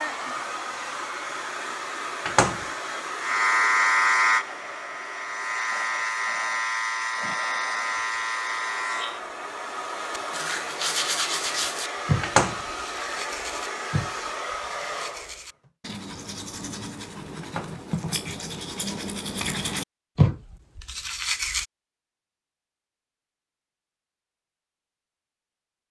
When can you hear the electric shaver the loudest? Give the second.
4 s.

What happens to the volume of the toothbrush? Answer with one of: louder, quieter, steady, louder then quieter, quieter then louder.
quieter then louder.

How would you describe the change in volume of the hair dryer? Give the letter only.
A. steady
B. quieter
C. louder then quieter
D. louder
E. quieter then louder
E.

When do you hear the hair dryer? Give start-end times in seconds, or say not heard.
0.0-15.7.